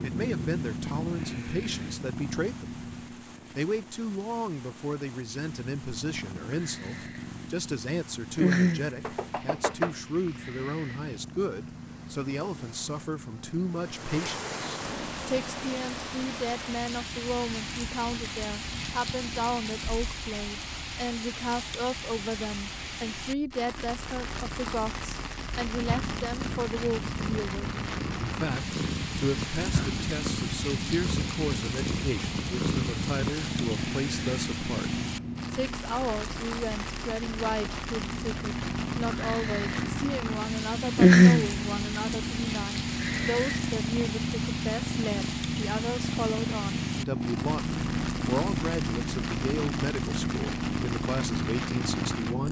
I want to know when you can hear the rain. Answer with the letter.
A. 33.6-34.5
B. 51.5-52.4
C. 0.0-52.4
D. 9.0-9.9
C.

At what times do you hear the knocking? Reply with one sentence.
You can hear the knocking from 9.0 to 9.9 s.